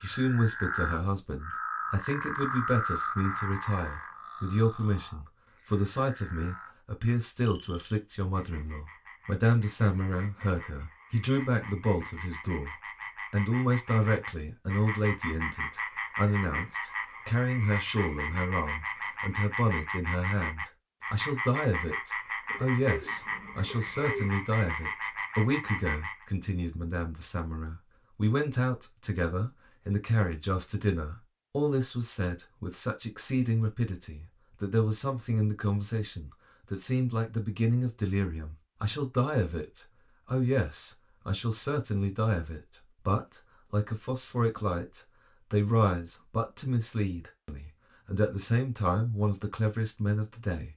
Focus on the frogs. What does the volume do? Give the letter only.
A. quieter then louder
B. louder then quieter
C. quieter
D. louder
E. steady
A.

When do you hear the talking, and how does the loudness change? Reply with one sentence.
The talking can be heard from 0.0 to 50.7 s, at a steady volume.